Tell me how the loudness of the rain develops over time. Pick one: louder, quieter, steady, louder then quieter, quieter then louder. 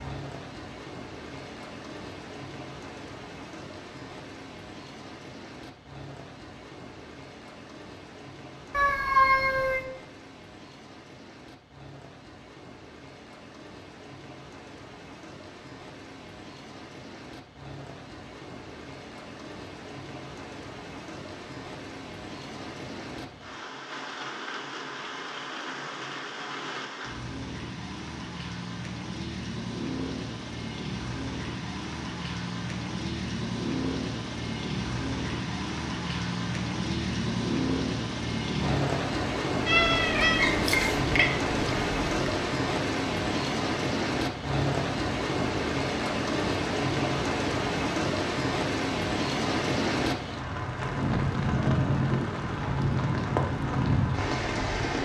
louder.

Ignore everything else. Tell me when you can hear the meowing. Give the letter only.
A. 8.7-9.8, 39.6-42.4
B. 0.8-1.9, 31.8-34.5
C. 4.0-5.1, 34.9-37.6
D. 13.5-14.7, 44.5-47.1
A.